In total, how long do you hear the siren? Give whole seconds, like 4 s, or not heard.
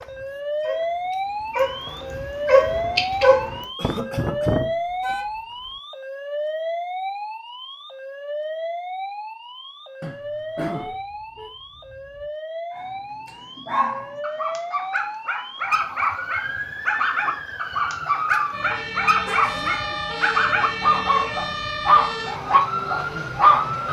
24 s.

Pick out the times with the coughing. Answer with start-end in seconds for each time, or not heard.
3.8-5.2, 10.0-11.0, 19.4-20.1.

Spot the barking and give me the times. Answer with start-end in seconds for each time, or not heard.
0.0-3.6, 12.7-23.6.